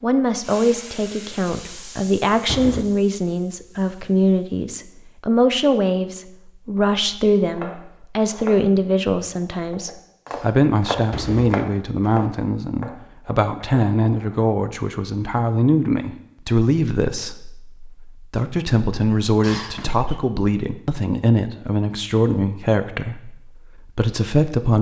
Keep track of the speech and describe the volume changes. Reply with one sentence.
The volume of the speech stays about the same.